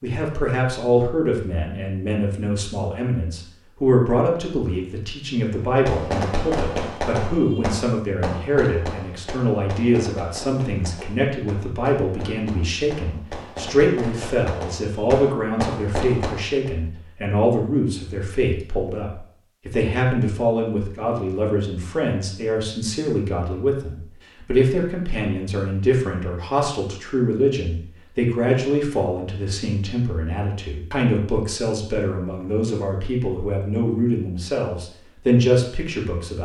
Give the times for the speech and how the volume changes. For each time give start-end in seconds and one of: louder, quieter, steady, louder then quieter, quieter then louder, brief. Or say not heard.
0.0-36.4 steady.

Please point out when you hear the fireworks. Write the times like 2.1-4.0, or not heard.
5.8-16.7.